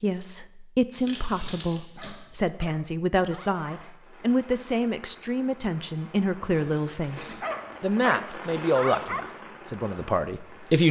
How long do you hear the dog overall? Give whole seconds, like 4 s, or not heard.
4 s.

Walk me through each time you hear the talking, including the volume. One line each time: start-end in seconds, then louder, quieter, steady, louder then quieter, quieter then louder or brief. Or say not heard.
0.0-10.8 steady.